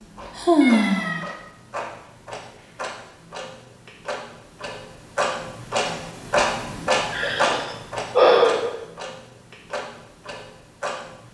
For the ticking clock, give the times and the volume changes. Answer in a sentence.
The ticking clock can be heard from 0.0 to 11.2 s, getting louder then quieter.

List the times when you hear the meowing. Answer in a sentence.
You can hear the meowing from 0.6 to 1.4 s.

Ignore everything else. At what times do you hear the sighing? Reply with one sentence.
The sighing can be heard from 0.3 to 1.2 s and from 6.7 to 8.8 s.